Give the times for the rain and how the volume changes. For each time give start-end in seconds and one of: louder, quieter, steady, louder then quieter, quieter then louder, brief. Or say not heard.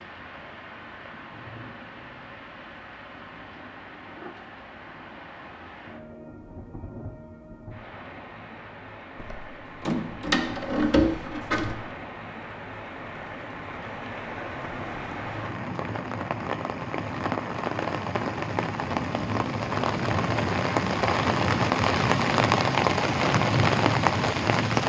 0.0-24.8 louder.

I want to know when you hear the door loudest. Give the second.
11 s.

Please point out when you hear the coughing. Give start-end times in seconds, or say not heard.
not heard.